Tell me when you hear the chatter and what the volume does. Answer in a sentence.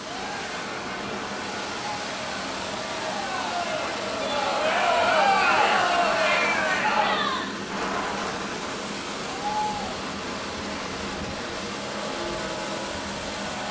You can hear the chatter from 0.0 to 13.6 s, getting louder then quieter.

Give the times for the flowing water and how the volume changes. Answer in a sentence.
You can hear the flowing water from 0.0 to 13.6 s, at a steady volume.